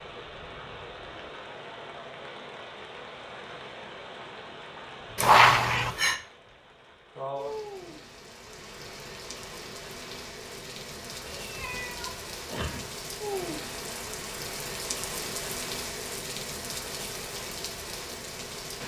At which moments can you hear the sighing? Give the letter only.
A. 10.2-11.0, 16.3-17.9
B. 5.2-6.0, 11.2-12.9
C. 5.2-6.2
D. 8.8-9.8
C.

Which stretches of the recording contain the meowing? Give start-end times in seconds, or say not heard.
5.2-6.0, 11.2-12.9.